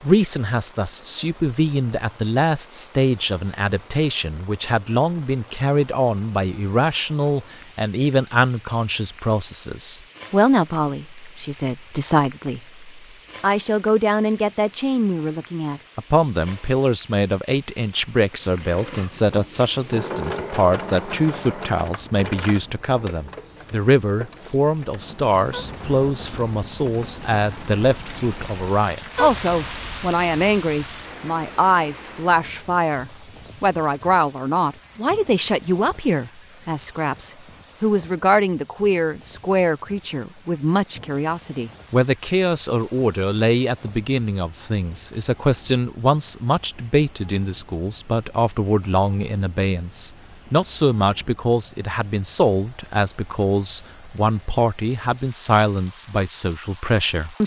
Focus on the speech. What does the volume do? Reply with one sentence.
The volume of the speech stays about the same.